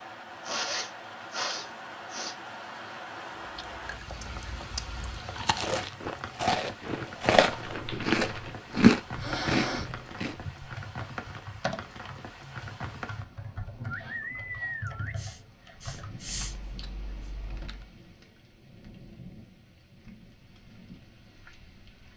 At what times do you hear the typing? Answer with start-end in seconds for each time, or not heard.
7.5-17.9.